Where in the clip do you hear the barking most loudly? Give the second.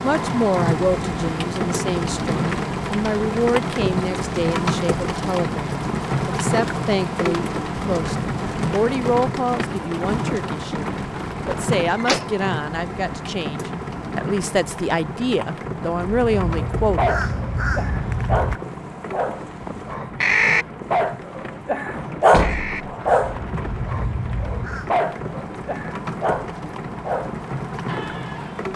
22 s.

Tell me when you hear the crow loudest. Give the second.
20 s.